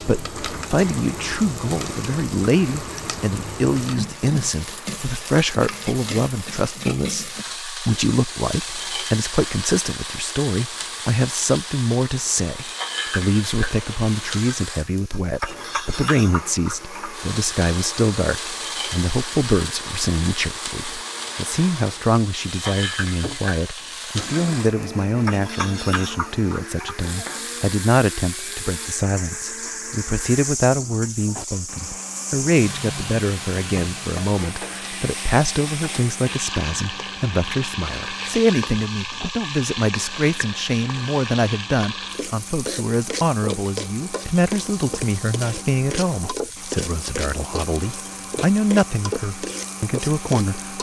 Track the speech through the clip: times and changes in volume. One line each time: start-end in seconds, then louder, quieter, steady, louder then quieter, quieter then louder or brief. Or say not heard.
0.0-50.7 steady.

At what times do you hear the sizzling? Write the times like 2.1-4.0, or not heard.
0.0-50.7.